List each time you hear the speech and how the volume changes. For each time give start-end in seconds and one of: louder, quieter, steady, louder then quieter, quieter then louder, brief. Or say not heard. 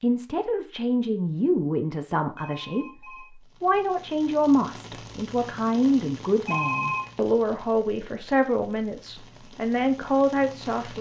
0.0-10.9 steady.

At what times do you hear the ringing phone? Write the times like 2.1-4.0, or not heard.
2.4-3.3, 6.5-7.1.